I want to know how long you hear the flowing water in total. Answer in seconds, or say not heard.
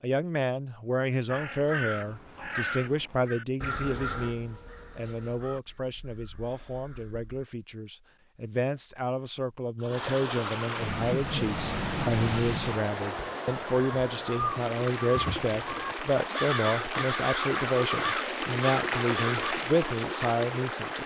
11 s.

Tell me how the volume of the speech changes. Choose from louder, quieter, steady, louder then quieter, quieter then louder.
quieter then louder.